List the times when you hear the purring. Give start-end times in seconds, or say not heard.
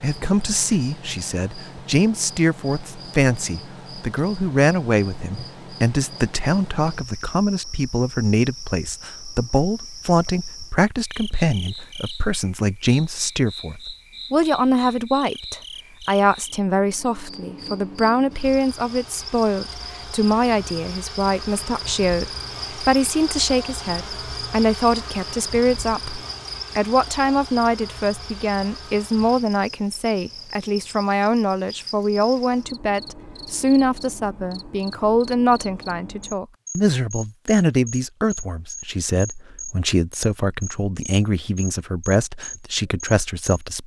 not heard.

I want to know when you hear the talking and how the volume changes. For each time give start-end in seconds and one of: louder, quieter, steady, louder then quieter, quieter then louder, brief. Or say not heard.
0.0-43.8 steady.